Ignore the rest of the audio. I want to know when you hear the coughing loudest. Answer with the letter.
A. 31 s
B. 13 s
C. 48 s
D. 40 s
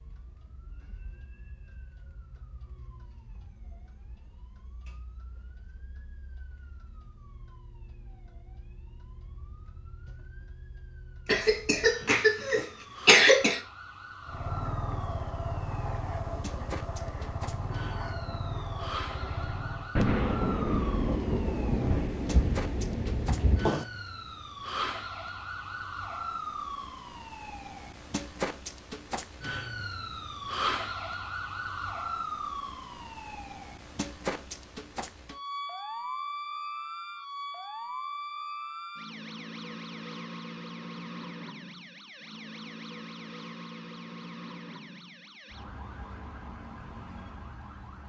B.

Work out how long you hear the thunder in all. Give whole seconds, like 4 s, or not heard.
4 s.